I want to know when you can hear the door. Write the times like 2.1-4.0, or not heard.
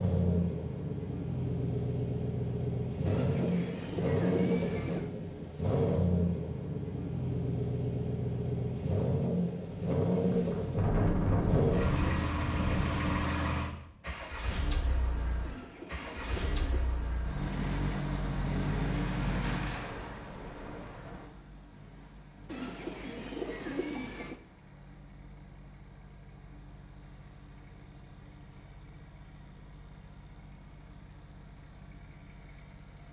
not heard.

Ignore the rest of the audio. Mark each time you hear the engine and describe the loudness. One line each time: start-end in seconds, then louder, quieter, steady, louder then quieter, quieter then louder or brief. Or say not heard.
0.0-33.0 quieter.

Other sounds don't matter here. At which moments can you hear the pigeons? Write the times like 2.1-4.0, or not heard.
3.0-5.2, 15.4-16.9, 22.4-24.4.